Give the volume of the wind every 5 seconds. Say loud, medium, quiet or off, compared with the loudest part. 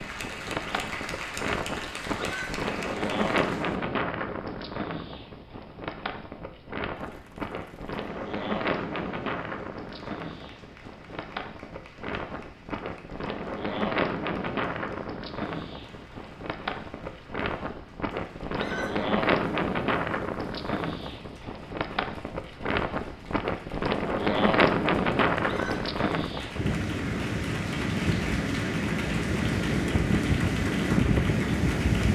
medium, medium, medium, medium, loud, loud, loud.